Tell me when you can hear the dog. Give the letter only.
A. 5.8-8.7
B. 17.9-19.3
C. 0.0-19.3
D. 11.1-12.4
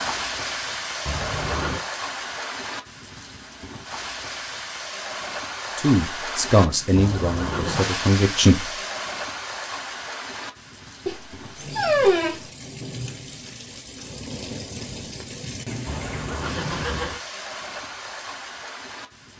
D.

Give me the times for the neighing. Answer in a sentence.
You can hear the neighing from 1.1 to 1.8 s, from 7.0 to 8.0 s and from 15.8 to 17.2 s.